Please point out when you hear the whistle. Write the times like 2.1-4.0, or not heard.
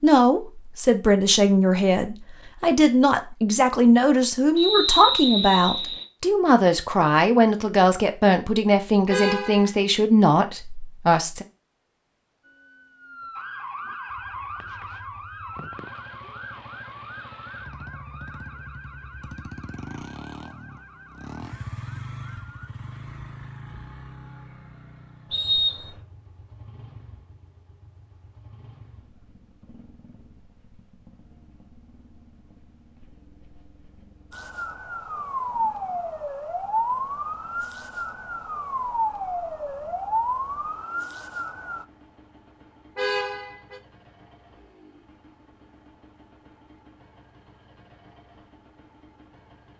4.5-6.0, 25.3-26.0.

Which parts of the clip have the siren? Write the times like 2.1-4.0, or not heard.
12.4-22.7, 34.3-41.9.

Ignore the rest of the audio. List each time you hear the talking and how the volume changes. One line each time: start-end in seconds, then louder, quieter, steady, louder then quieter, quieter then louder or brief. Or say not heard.
0.0-11.4 steady.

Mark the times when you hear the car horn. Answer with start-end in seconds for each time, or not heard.
9.1-9.8, 43.0-43.8.